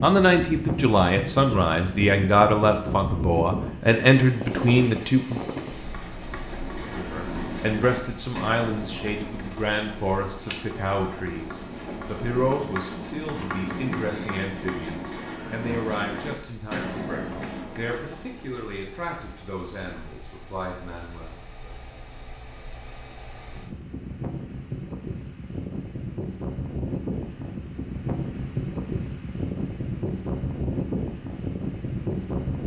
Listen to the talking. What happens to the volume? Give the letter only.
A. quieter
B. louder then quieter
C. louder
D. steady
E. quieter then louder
A.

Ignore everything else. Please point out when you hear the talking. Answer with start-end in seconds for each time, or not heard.
0.0-5.7, 6.8-21.7.